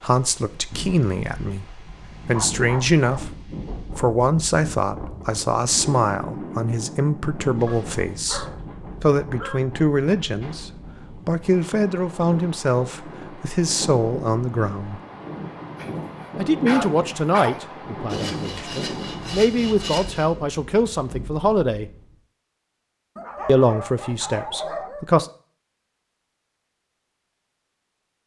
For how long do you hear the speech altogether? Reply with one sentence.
You can hear the speech for 22 seconds altogether.